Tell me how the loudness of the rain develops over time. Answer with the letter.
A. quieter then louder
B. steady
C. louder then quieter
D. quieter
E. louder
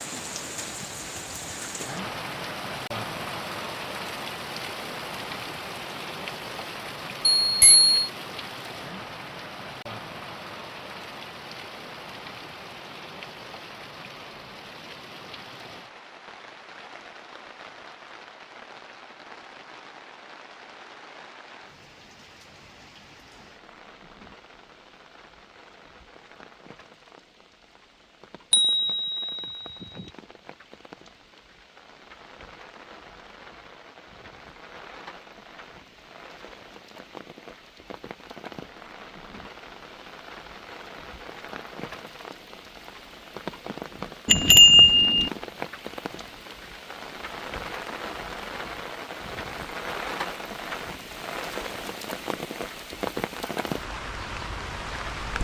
A.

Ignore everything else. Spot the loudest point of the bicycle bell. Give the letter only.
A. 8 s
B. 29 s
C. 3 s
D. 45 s
D.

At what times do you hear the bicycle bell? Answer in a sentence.
You can hear the bicycle bell from 7.2 to 8.0 s, from 28.5 to 30.1 s and from 44.2 to 45.3 s.